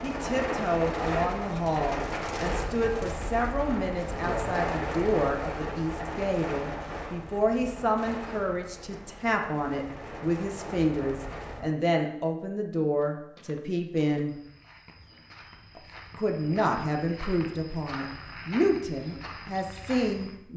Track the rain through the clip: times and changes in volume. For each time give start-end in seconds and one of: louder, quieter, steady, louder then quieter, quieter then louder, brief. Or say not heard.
0.0-11.8 quieter.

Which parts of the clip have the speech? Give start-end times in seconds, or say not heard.
0.0-14.3, 15.8-20.5.